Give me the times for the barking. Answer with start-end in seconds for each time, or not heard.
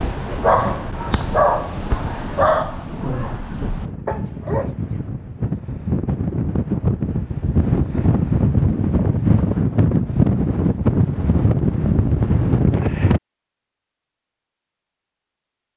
0.0-5.0.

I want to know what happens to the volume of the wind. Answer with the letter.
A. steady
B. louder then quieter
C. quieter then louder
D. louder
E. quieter
D.